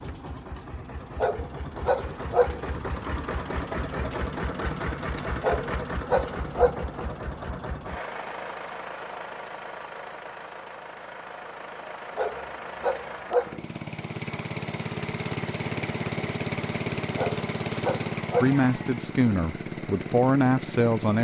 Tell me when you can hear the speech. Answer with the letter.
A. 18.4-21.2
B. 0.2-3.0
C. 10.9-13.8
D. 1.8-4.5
A.